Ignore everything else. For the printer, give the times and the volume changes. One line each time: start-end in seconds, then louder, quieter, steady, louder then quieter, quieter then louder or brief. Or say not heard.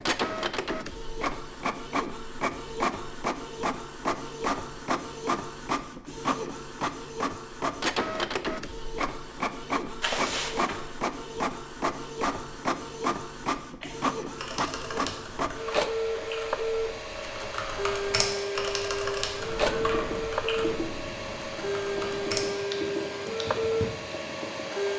0.0-24.9 steady.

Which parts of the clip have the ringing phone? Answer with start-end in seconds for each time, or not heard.
10.0-10.8.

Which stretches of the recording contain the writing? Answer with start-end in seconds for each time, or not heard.
19.4-24.9.